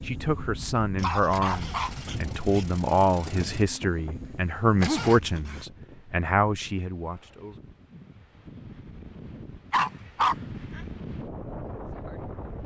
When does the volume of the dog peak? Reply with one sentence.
The volume of the dog peaks at 10 seconds.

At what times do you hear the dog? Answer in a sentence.
You can hear the dog from 0.9 to 2.6 s, from 4.8 to 5.7 s and from 9.7 to 10.8 s.